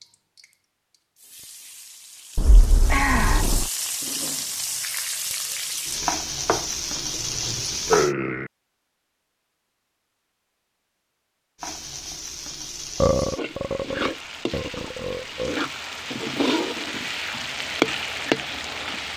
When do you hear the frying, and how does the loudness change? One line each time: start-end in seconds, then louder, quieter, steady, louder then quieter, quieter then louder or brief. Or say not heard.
0.0-8.2 louder
11.6-19.1 louder.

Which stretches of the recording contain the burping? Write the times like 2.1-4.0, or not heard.
2.4-3.7, 6.5-8.5, 13.0-15.6.